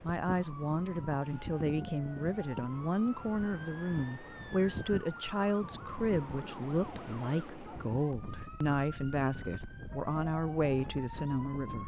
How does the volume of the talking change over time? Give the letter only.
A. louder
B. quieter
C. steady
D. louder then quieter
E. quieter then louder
C.